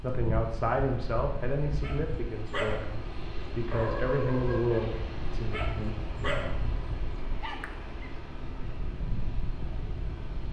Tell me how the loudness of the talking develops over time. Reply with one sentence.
The loudness of the talking goes down, then up.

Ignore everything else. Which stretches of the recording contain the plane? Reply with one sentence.
You can hear the plane from 0.0 to 10.4 s.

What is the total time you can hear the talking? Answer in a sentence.
You can hear the talking for 6 seconds altogether.